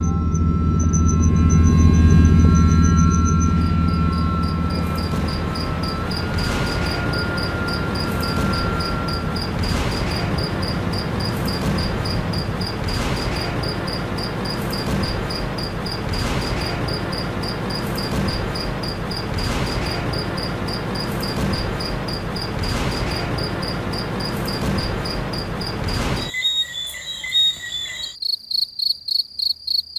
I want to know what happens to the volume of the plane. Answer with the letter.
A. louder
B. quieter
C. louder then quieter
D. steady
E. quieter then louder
B.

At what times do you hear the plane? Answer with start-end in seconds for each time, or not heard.
0.0-12.8.